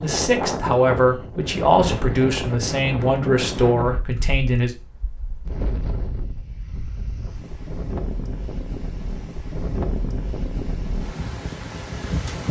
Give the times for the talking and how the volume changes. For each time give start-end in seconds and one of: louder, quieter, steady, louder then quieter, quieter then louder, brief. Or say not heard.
0.0-4.8 steady.